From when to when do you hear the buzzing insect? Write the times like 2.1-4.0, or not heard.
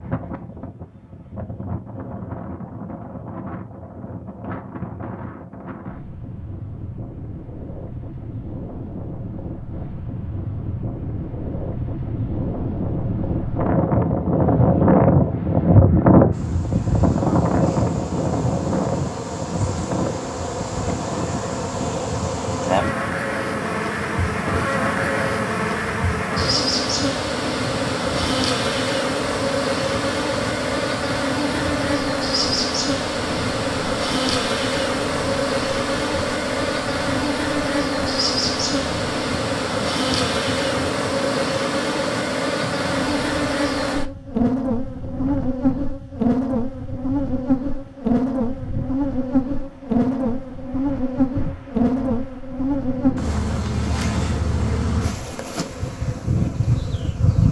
16.3-57.4.